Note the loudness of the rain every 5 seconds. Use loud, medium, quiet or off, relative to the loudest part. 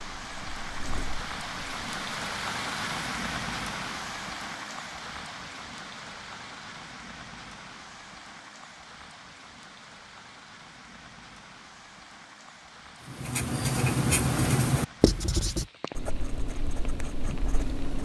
loud, medium, quiet, quiet.